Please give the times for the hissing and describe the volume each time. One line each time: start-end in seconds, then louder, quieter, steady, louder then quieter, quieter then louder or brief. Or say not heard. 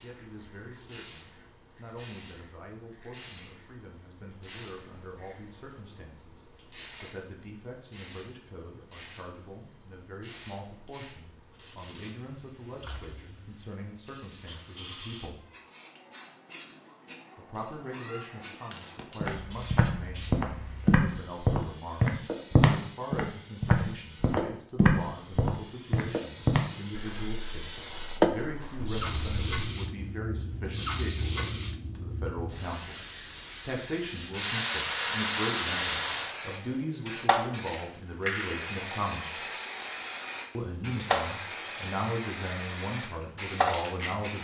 0.0-44.3 louder.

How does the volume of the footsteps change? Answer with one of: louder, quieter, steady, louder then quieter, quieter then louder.
quieter.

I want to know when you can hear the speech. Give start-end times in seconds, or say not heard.
0.0-15.4, 17.4-39.5, 40.5-44.3.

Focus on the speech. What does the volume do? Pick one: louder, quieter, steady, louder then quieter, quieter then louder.
louder.